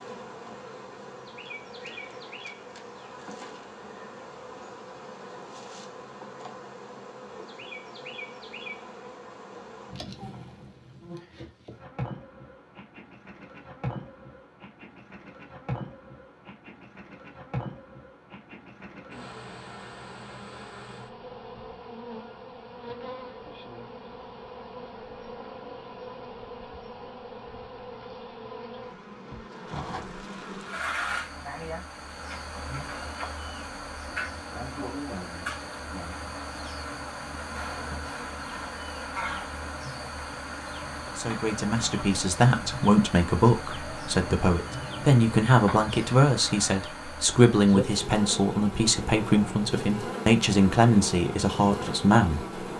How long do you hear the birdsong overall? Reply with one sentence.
You can't hear the birdsong here.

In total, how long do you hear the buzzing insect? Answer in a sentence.
The buzzing insect can be heard for 53 seconds in total.